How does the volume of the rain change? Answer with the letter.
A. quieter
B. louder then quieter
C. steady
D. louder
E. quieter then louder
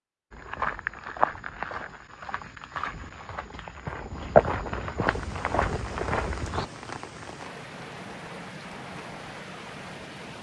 C.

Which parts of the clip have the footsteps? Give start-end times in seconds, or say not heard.
0.3-6.7.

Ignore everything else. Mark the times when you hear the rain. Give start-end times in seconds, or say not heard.
5.0-10.3.